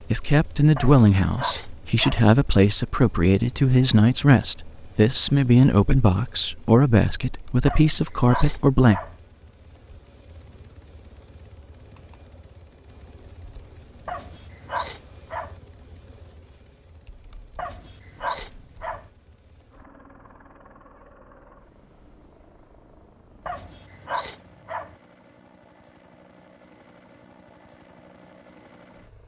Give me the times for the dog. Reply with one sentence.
The dog can be heard from 0.8 to 2.2 s, from 7.7 to 9.2 s, from 14.1 to 15.6 s, from 17.6 to 19.1 s and from 23.4 to 24.9 s.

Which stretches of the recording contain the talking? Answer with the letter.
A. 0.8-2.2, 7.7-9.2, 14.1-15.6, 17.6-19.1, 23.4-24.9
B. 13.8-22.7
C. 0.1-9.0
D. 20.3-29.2
C.